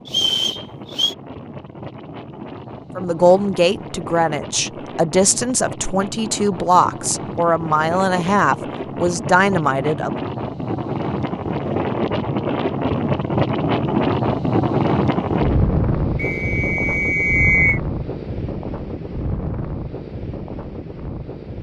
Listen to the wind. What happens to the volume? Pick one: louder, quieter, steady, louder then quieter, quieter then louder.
louder then quieter.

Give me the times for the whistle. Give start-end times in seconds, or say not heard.
0.1-1.1, 16.1-17.8.